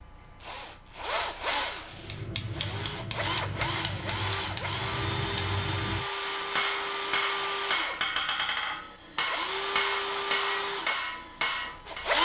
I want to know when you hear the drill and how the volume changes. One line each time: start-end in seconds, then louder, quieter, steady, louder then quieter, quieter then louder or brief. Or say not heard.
0.0-12.2 steady.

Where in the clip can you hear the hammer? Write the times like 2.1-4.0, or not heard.
1.9-12.1.